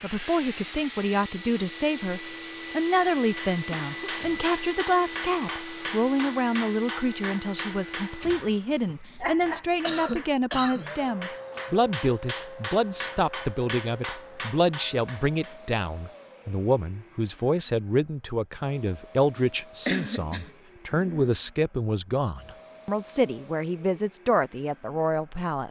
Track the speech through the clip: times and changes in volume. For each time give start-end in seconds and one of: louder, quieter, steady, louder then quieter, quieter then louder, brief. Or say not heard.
0.0-25.6 steady.